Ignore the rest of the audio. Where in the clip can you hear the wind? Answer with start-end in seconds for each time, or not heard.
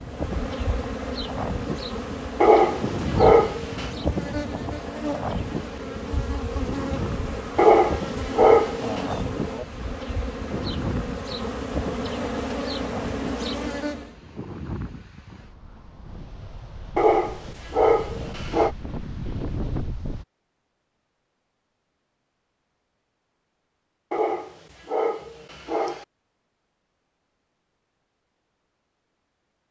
0.0-20.2.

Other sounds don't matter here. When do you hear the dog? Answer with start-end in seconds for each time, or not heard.
2.4-3.9, 7.5-9.1, 16.9-18.7, 24.1-26.1.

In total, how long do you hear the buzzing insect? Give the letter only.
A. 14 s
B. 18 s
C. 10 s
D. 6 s
A.